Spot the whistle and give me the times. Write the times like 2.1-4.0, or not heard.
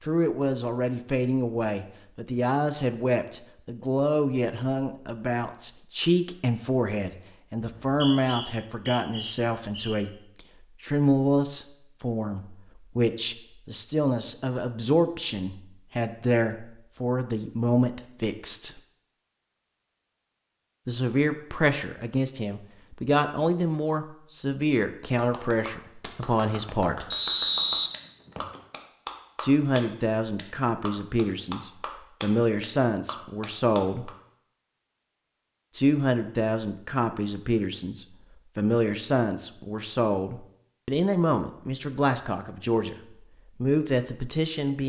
7.6-10.1, 27.1-28.6.